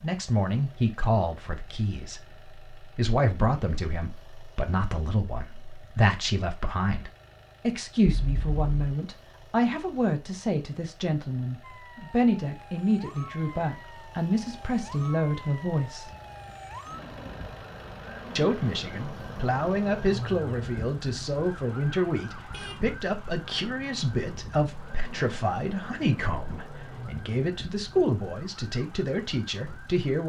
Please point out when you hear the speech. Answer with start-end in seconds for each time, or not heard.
0.0-16.1, 18.4-30.2.